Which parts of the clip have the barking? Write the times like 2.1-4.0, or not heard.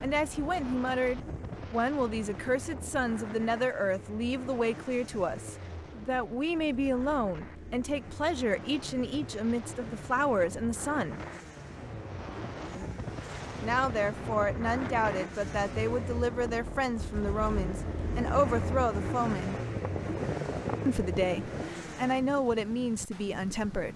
not heard.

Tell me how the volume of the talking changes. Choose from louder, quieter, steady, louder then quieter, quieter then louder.
steady.